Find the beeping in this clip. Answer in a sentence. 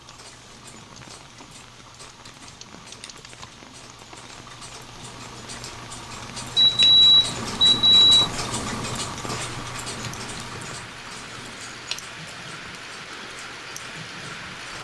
The beeping can be heard from 6.5 to 8.2 s.